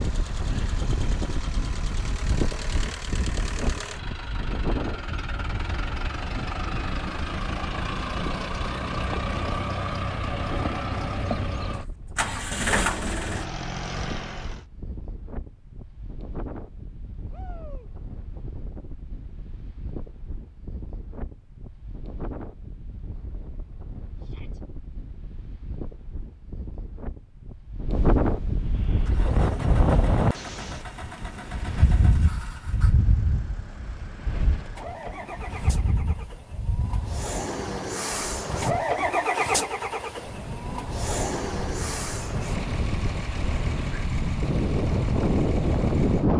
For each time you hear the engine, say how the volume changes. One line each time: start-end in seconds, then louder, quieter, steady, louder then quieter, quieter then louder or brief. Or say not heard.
0.0-14.7 louder
28.6-46.3 louder then quieter.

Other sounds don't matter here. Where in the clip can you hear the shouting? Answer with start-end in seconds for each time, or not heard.
17.3-17.9, 24.2-24.6.